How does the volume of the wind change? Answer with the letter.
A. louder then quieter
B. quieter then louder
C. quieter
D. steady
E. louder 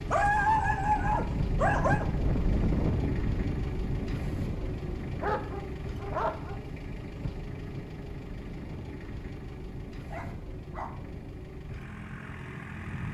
C.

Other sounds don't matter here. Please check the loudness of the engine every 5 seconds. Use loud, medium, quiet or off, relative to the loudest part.
loud, loud, medium.